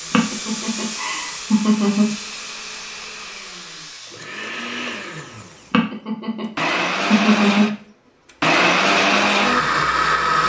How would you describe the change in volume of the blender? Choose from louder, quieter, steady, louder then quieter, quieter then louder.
louder.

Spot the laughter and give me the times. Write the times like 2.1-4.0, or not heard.
0.1-2.1, 5.7-7.7.